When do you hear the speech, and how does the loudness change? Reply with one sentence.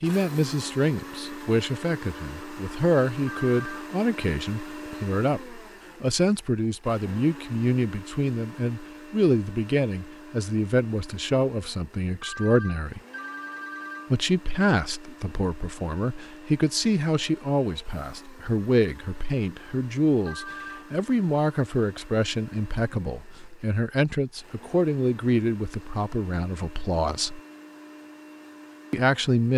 The speech can be heard from 0.0 to 13.0 s, at a steady volume; from 14.1 to 27.4 s, at a steady volume; and briefly from 28.9 to 29.5 s.